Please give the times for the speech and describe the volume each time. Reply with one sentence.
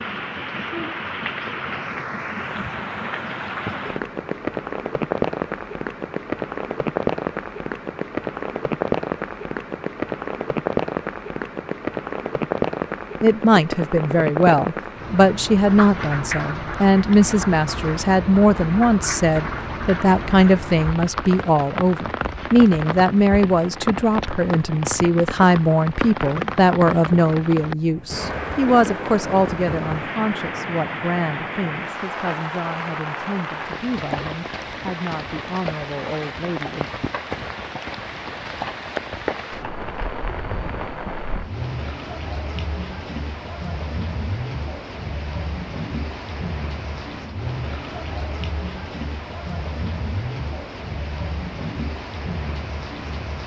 The speech can be heard from 13.2 to 36.9 s, getting quieter.